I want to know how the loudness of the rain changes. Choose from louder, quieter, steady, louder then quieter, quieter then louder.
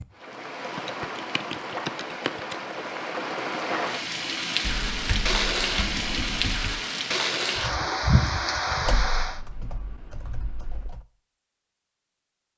louder.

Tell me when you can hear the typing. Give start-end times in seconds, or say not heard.
0.6-2.5, 4.6-6.8, 8.8-11.1.